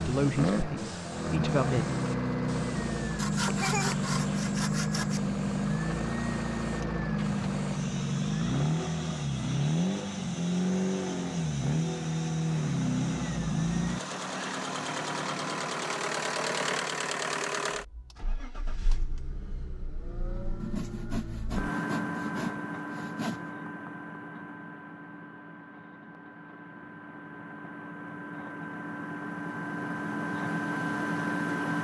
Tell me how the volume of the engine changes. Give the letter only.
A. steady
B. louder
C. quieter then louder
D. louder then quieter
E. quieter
E.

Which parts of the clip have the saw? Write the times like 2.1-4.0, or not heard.
3.1-5.2, 20.6-23.5.